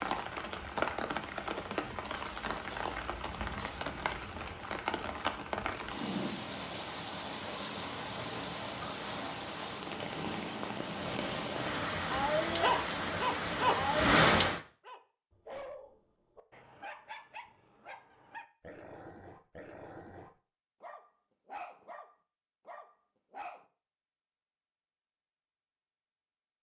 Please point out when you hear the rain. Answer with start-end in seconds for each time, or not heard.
0.0-14.6.